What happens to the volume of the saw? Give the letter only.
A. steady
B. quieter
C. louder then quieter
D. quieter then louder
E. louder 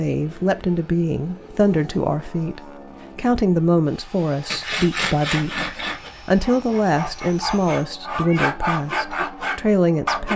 D.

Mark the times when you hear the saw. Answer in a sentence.
The saw can be heard from 4.5 to 10.3 s.